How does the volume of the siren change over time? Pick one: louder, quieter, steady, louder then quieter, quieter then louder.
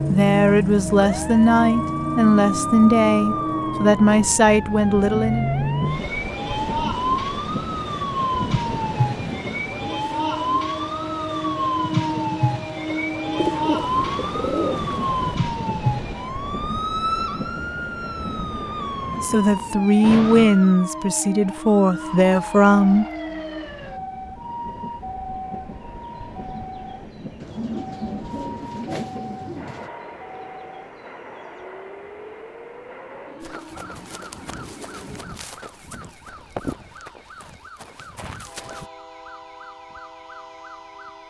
quieter.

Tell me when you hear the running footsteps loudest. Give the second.
37 s.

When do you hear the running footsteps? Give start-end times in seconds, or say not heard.
33.4-38.9.